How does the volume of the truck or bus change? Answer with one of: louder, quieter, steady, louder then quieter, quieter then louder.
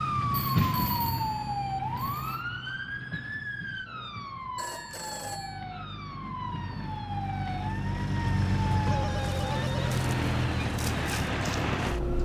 quieter then louder.